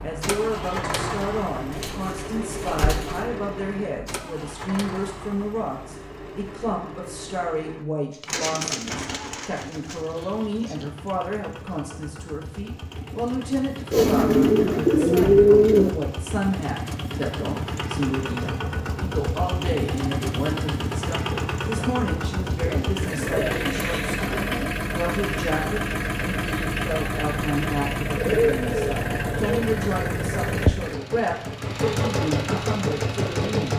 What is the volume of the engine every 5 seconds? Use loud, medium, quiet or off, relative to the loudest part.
medium, quiet, quiet, medium, loud, loud, loud.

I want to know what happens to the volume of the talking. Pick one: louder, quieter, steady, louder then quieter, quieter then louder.
steady.